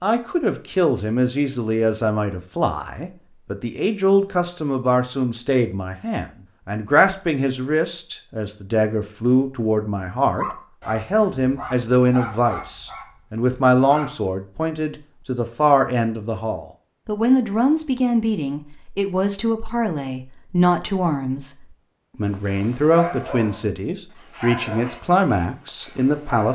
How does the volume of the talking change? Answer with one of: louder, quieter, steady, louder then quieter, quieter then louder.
steady.